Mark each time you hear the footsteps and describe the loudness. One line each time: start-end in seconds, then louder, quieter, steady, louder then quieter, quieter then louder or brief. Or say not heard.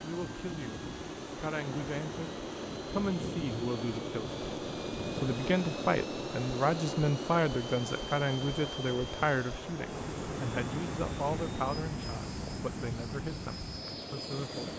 not heard.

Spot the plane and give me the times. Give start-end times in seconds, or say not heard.
0.0-14.7.